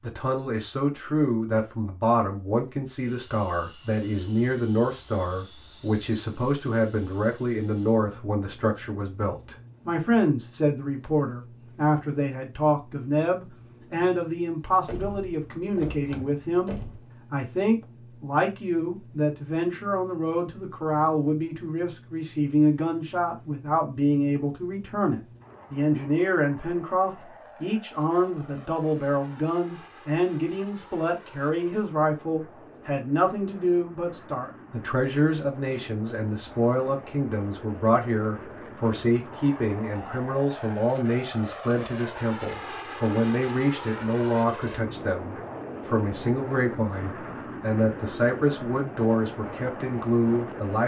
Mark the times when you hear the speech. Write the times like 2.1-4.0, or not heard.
0.0-50.8.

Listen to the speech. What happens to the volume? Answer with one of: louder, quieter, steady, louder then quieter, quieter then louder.
steady.